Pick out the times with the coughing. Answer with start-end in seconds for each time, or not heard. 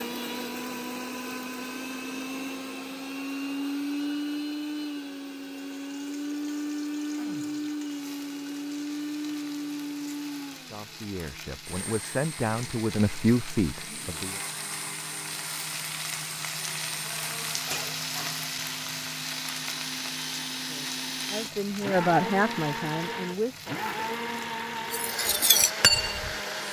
not heard.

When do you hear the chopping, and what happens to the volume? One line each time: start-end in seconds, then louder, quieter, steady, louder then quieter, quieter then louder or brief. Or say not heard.
not heard.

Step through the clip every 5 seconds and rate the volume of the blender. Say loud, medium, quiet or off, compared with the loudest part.
loud, loud, medium, medium, loud, loud.